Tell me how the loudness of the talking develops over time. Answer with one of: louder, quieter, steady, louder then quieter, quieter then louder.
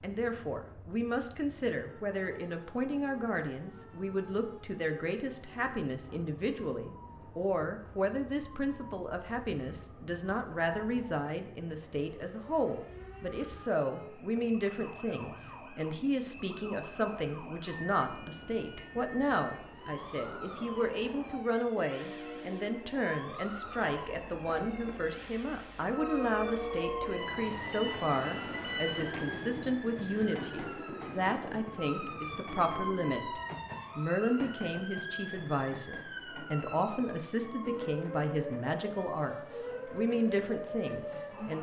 steady.